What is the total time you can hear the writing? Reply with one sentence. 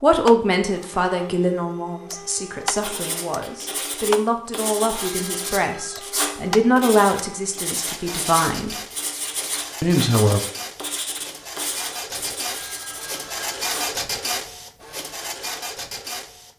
The writing can be heard for 11 seconds in total.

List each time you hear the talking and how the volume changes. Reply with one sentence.
You can hear the talking from 0.0 to 8.8 s, getting quieter then louder; and briefly from 9.8 to 10.4 s.